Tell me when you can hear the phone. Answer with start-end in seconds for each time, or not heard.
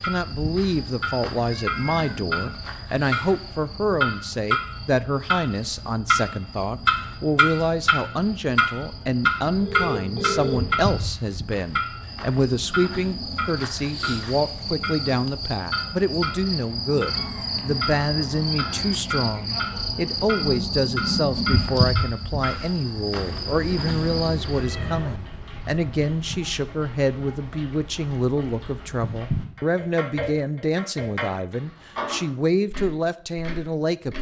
9.6-10.6.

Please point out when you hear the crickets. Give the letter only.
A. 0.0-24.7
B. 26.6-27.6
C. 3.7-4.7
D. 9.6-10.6
A.